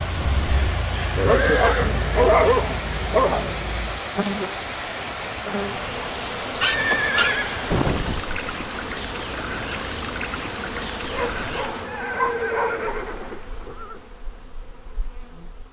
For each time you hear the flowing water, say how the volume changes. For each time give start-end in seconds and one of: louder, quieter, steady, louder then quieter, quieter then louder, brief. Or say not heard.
0.0-11.9 steady.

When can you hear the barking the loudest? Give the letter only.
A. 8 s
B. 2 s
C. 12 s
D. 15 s
B.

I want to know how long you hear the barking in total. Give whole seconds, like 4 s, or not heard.
6 s.